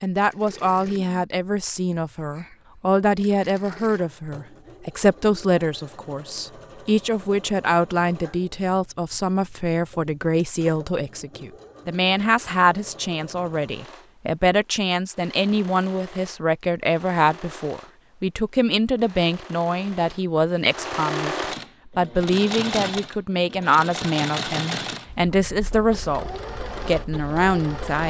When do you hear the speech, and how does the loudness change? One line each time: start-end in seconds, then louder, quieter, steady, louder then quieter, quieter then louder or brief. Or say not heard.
0.0-28.0 steady.